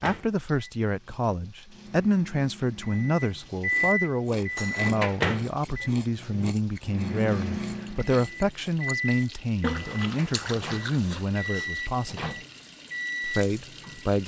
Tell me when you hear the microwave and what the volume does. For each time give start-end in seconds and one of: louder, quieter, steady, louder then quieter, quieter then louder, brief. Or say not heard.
0.0-14.1 louder then quieter.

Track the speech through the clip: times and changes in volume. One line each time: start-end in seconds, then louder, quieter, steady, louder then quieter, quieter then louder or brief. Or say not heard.
0.0-12.4 steady
13.2-14.2 brief.